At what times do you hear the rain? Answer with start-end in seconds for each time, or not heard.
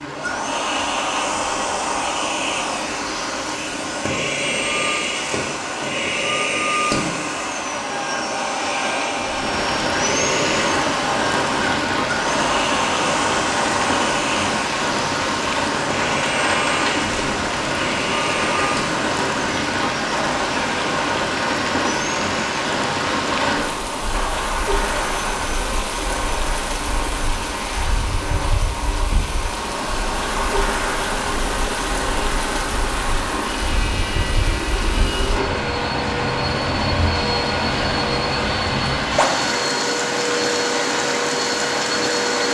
0.0-42.4.